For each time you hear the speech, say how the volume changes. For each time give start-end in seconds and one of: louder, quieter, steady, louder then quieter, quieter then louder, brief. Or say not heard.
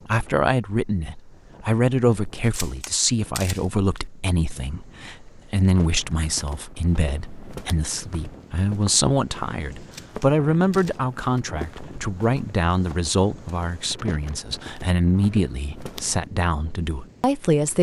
0.1-17.7 steady.